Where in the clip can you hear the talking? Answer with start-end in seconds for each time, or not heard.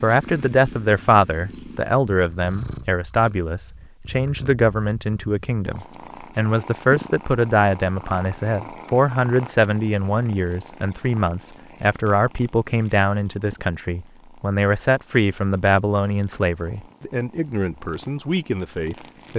0.0-19.3.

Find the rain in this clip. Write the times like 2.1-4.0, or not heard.
not heard.